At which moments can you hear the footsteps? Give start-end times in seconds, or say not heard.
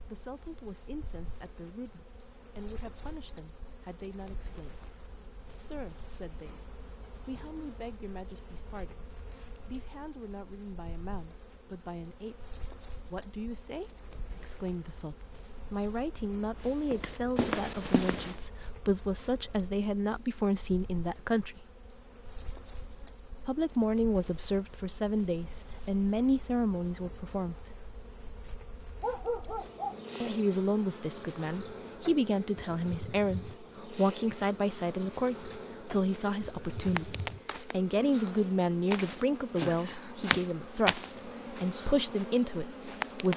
16.6-18.4, 35.5-43.3.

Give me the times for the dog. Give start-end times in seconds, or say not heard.
29.0-29.9.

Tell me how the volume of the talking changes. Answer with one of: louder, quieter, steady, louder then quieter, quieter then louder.
louder.